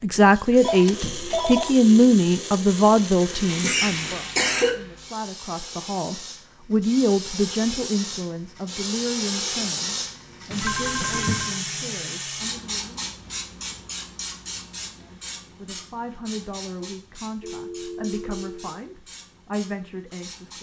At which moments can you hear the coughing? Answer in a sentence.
You can hear the coughing from 3.5 to 4.7 s.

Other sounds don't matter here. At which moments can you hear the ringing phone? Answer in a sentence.
The ringing phone can be heard from 0.6 to 1.8 s, from 10.5 to 11.6 s and from 17.4 to 18.8 s.